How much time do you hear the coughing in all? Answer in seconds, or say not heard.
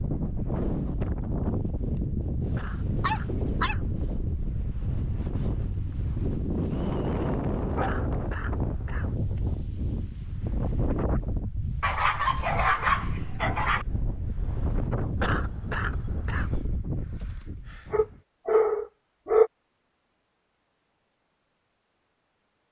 4 s.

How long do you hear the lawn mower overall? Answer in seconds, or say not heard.
not heard.